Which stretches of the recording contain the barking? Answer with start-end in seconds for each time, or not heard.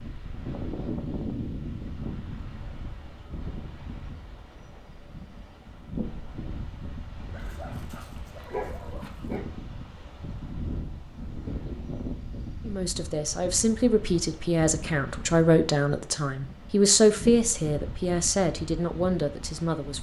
7.3-9.4.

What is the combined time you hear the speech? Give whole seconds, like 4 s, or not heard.
7 s.